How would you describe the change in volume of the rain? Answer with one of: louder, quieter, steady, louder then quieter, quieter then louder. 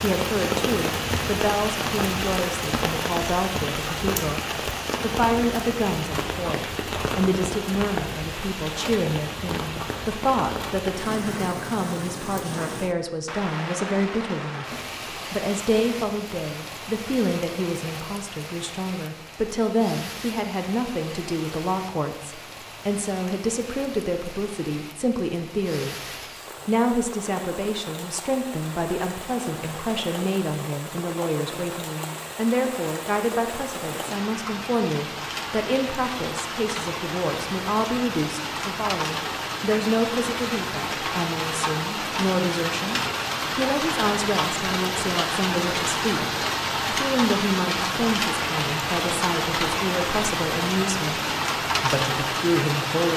quieter then louder.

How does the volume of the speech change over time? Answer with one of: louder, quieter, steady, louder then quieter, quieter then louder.
steady.